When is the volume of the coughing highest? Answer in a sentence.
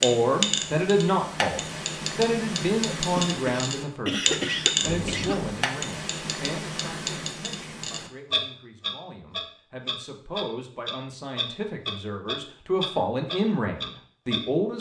The loudest moment of the coughing is at 4 seconds.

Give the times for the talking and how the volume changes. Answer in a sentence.
You can hear the talking from 0.0 to 14.7 s, getting quieter then louder.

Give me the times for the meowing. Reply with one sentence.
You can hear the meowing from 4.8 to 5.5 s.